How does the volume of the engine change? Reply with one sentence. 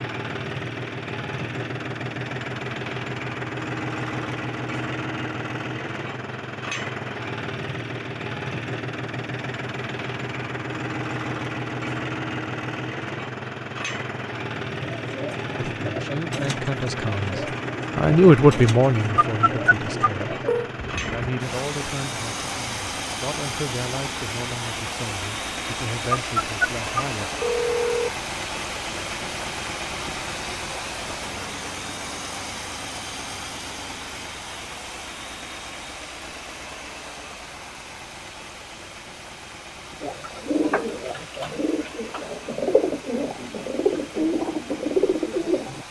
The volume of the engine goes down.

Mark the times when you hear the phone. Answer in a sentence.
You can hear the phone from 19.1 to 20.7 s and from 26.1 to 28.1 s.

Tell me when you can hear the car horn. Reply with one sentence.
You can't hear the car horn here.